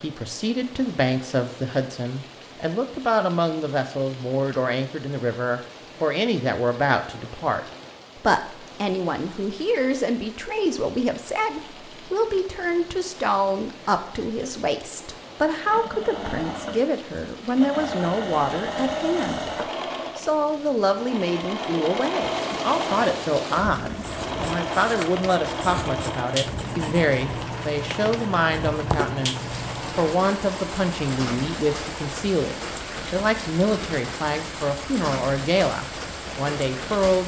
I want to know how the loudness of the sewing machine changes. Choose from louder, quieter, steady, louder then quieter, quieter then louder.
quieter.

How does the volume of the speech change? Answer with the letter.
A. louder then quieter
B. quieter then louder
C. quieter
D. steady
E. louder
D.